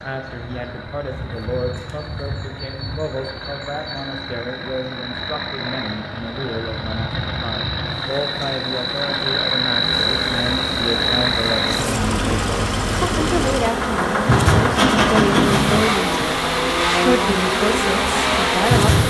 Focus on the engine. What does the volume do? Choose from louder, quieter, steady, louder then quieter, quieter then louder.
louder.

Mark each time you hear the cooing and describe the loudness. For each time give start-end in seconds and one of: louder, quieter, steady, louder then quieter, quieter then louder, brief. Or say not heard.
not heard.